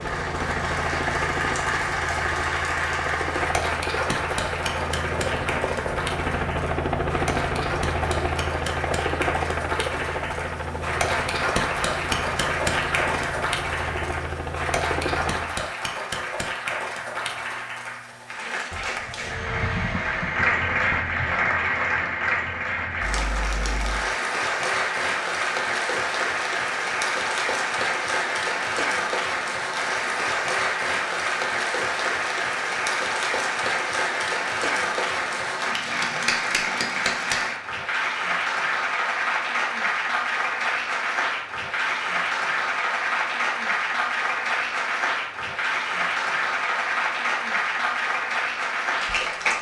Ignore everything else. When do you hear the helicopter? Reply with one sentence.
You can hear the helicopter from 0.0 to 15.7 s and from 19.0 to 21.5 s.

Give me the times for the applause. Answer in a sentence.
The applause can be heard from 0.0 to 49.5 s.